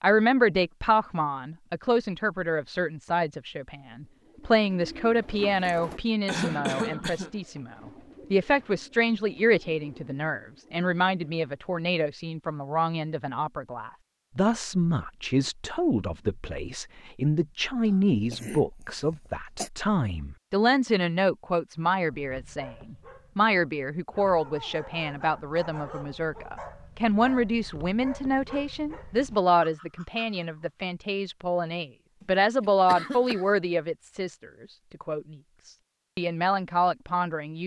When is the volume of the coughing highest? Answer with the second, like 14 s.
7 s.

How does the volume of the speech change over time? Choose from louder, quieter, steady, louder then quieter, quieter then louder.
steady.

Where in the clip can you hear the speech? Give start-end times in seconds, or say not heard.
0.0-37.6.